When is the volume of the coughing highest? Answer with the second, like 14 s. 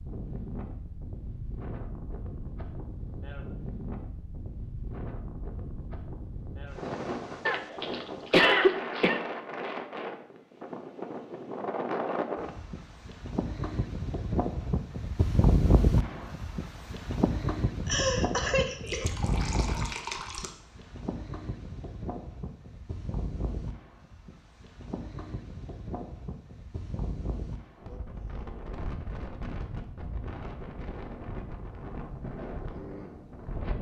9 s.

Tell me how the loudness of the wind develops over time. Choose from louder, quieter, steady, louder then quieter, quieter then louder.
louder then quieter.